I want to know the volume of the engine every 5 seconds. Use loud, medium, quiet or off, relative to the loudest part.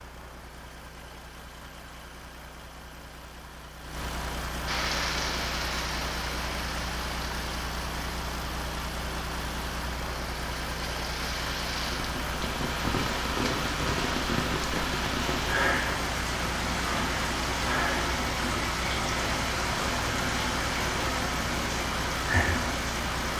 medium, loud, loud, loud, loud.